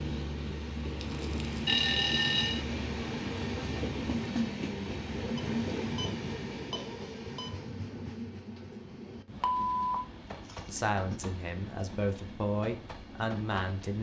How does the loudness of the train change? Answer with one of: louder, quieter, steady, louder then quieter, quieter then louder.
quieter.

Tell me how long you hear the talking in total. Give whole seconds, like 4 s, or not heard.
3 s.